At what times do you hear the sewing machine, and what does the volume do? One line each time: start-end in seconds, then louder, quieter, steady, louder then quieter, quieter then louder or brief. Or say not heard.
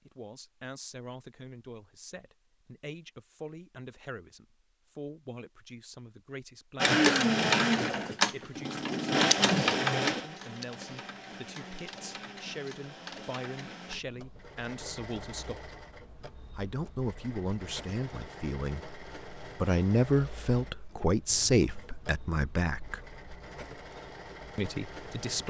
6.8-25.4 quieter.